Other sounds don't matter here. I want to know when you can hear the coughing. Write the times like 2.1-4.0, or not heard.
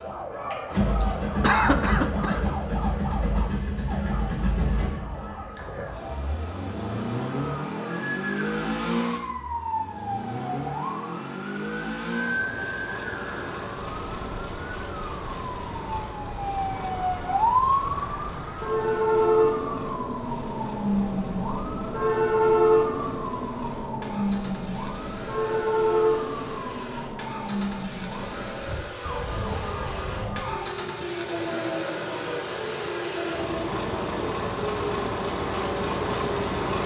0.9-2.5.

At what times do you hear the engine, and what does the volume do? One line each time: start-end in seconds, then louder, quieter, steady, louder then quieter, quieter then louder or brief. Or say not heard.
0.0-36.8 quieter then louder.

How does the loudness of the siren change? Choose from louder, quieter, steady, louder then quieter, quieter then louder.
louder then quieter.